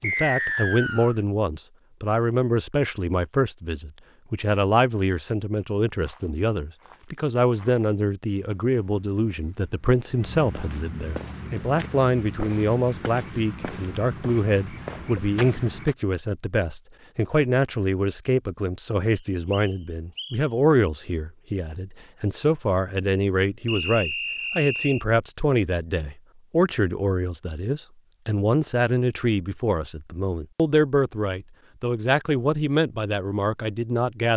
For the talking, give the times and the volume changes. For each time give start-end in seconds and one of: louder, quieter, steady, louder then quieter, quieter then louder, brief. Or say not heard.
0.0-34.3 steady.